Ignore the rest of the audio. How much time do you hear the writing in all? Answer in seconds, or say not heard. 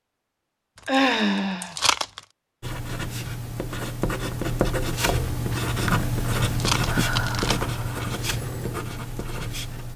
7 s.